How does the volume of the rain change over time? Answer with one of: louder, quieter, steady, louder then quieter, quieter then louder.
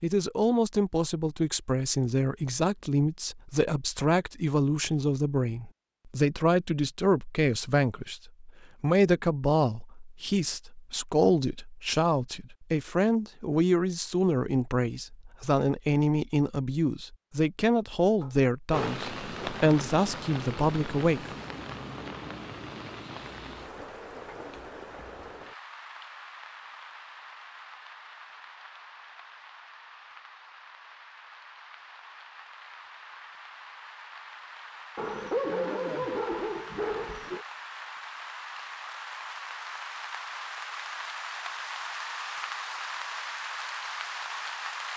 quieter then louder.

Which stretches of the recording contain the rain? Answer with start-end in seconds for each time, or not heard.
18.7-44.9.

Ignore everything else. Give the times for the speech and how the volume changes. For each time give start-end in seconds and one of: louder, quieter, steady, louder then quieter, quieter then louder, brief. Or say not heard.
0.0-21.3 steady.